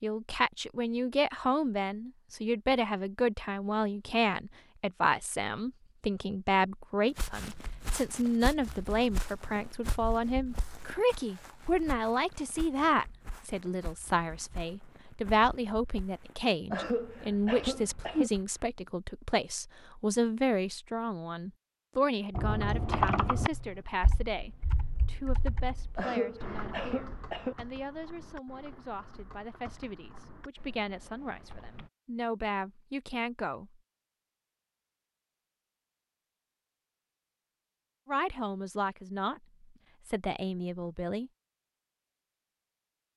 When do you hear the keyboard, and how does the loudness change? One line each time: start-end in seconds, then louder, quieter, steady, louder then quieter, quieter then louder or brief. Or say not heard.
22.3-31.9 quieter.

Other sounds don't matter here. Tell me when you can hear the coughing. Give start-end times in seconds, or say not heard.
16.7-18.3, 25.9-27.6.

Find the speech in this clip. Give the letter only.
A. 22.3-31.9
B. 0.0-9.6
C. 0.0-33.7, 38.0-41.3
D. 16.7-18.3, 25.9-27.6
C.